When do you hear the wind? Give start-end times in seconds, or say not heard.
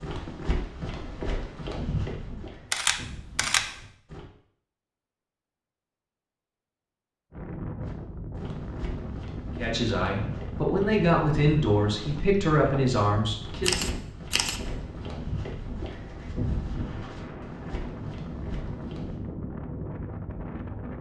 7.3-20.9.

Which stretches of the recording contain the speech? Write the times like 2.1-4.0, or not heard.
9.6-13.8.